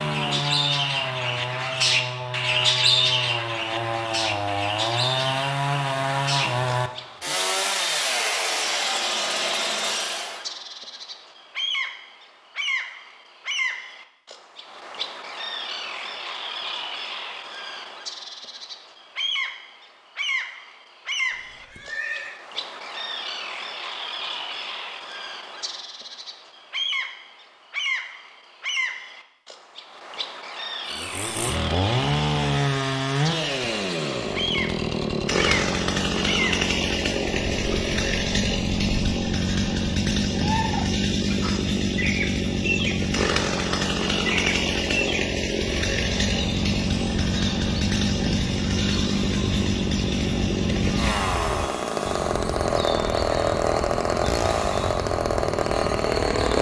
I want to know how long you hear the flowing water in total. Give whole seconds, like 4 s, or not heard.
not heard.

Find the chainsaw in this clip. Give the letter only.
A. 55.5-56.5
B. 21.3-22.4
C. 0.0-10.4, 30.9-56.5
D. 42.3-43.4
C.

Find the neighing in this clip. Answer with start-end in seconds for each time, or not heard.
21.3-22.4.